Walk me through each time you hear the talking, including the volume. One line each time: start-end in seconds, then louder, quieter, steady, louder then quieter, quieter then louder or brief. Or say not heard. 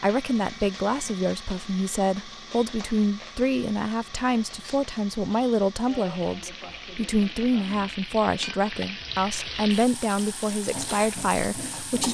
0.0-12.0 steady.